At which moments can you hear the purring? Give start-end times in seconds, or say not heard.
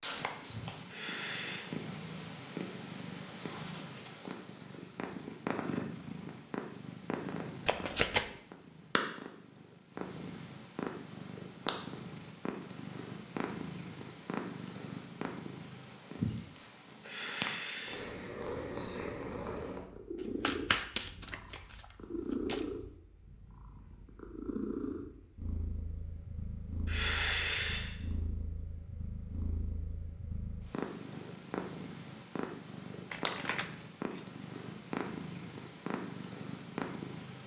0.0-37.4.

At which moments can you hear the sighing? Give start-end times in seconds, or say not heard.
0.8-1.6, 17.0-18.1, 26.9-27.9.